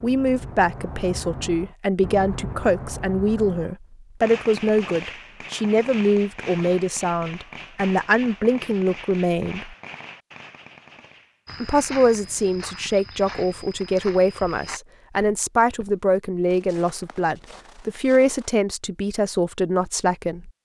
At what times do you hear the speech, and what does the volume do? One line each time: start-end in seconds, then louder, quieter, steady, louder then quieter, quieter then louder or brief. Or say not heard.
0.0-9.8 steady
11.6-20.5 steady.